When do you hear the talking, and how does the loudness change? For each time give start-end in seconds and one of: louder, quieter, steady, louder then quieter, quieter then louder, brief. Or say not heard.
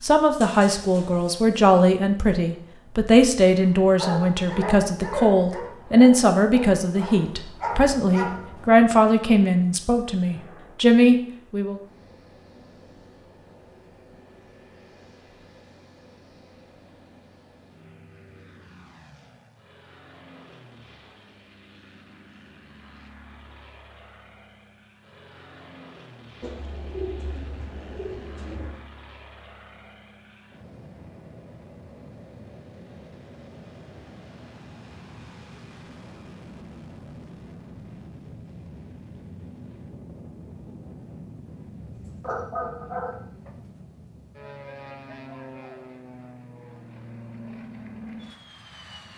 0.0-11.8 steady.